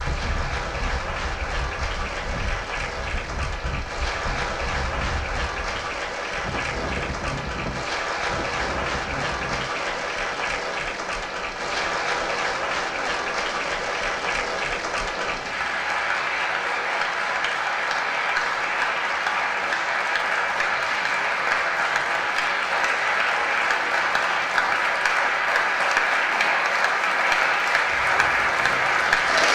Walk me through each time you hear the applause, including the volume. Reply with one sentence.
The applause can be heard from 0.0 to 29.5 s, getting louder.